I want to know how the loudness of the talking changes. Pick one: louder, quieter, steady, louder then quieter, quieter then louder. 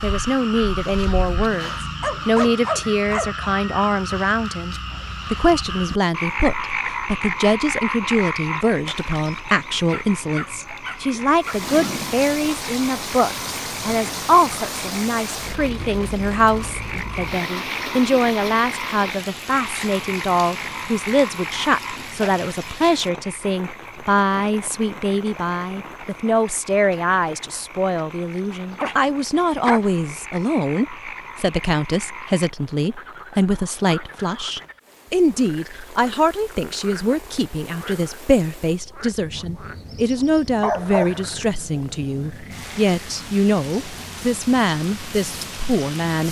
steady.